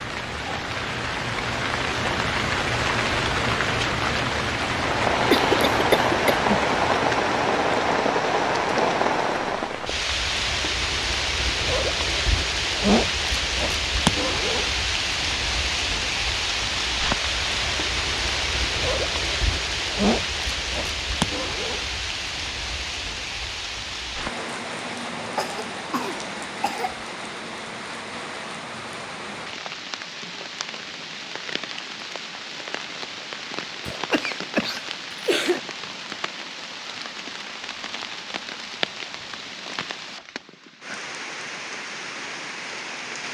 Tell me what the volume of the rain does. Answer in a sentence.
The volume of the rain goes down.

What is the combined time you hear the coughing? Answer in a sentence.
You can hear the coughing for 5 seconds altogether.